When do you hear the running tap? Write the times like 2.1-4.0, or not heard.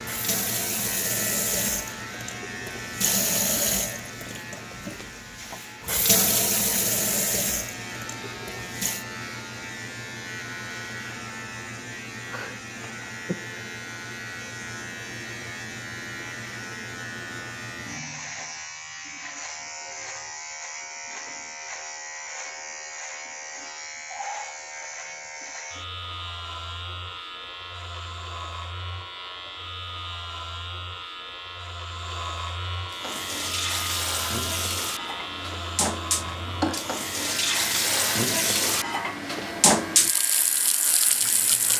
0.0-9.1, 32.9-41.7.